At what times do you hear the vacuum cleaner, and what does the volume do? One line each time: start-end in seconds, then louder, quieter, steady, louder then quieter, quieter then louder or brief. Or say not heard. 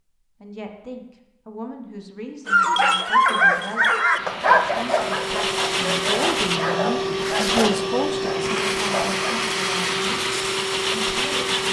4.2-11.6 steady.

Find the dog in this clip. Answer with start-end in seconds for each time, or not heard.
2.5-9.5.